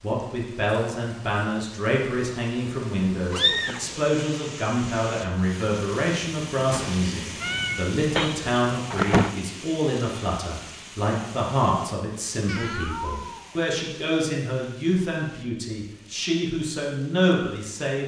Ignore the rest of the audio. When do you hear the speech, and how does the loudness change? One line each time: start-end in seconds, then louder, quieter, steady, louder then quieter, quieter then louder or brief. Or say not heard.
0.0-18.0 steady.